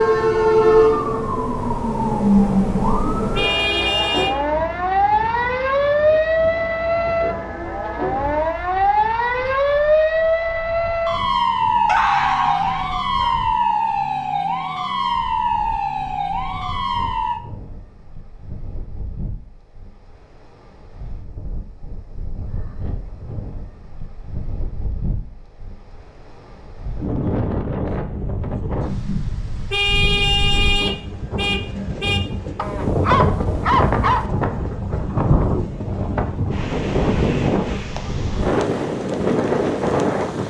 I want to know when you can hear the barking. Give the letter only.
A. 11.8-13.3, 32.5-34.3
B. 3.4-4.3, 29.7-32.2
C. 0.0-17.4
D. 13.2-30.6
A.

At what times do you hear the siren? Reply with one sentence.
You can hear the siren from 0.0 to 17.4 s.